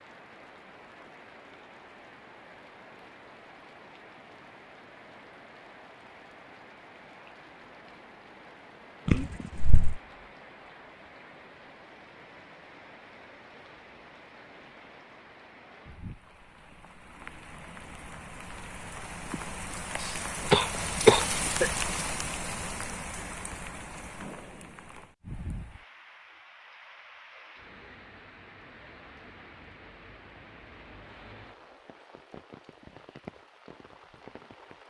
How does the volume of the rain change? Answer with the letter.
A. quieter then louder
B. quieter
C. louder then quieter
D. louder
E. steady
C.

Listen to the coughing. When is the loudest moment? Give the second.
21 s.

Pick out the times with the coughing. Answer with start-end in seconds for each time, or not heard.
9.1-10.0, 20.0-21.7.